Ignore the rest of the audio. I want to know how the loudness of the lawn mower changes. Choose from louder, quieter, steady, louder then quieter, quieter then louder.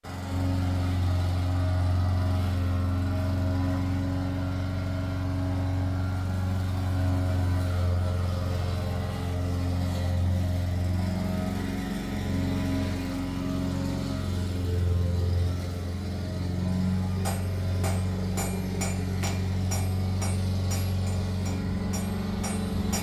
steady.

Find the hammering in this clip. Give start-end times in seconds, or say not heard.
17.1-22.9.